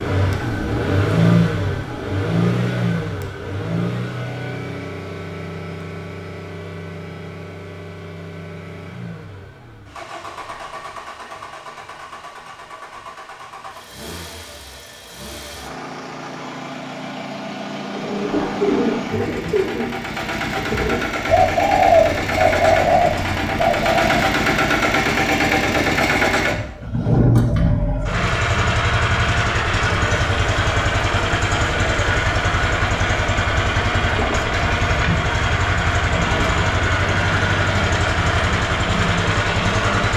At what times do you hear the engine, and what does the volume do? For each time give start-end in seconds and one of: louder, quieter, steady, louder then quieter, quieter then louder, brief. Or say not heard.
0.0-40.1 quieter then louder.